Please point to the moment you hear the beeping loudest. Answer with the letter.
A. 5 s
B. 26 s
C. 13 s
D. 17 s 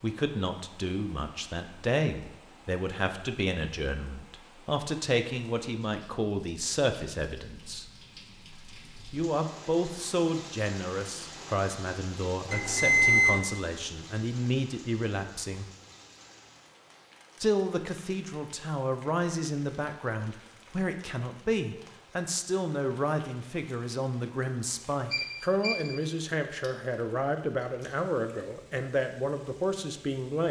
C.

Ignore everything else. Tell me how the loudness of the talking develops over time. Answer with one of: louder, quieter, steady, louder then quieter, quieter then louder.
steady.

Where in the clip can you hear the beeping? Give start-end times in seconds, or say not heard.
12.4-13.4, 25.1-25.9.